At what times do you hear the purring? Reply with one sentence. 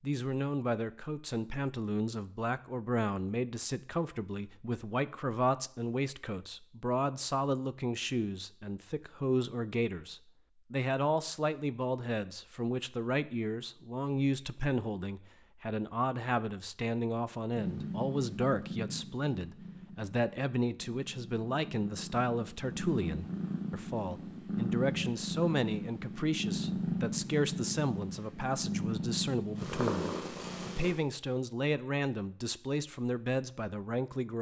The purring can be heard from 17.6 to 30.9 s.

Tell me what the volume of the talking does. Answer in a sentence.
The volume of the talking stays about the same.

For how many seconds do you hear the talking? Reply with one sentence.
The talking can be heard for 34 seconds in total.